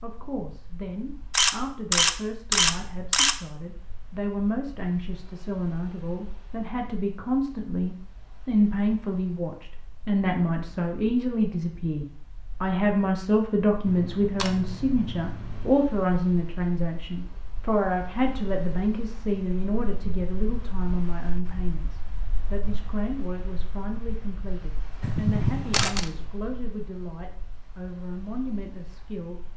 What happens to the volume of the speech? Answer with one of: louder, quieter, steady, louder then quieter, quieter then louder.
louder then quieter.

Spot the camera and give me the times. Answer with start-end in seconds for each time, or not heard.
1.3-3.4, 13.8-15.7, 25.0-26.1.